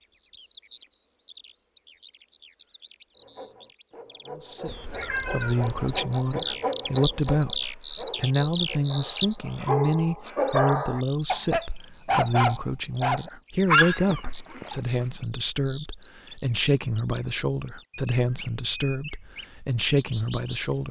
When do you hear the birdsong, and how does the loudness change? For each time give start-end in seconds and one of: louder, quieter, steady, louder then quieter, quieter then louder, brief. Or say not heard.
0.0-20.8 louder then quieter.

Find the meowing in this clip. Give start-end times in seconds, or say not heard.
4.7-6.0.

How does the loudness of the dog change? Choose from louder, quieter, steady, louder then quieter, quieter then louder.
louder.